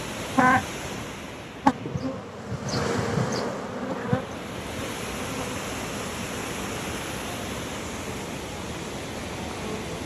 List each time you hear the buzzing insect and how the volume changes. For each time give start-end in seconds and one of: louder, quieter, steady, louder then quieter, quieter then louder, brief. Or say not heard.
0.1-0.7 brief
1.6-10.0 quieter.